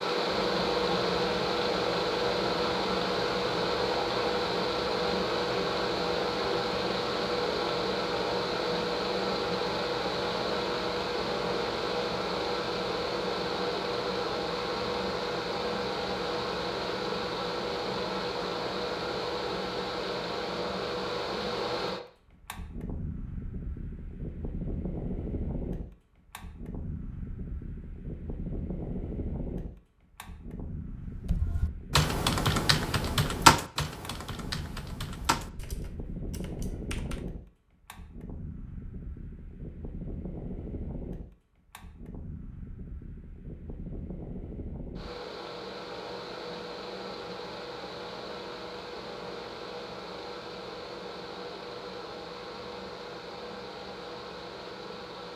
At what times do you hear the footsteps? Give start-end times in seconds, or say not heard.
not heard.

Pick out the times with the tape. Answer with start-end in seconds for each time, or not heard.
not heard.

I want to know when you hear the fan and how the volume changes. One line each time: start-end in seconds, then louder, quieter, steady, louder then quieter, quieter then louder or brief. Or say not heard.
0.0-55.3 quieter.